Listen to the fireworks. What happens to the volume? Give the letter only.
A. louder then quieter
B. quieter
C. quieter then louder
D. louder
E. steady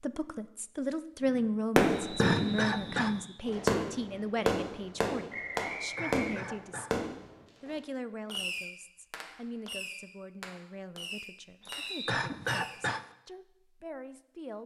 B.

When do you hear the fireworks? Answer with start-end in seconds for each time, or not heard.
1.8-12.8.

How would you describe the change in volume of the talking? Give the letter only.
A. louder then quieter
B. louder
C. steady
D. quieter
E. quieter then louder
D.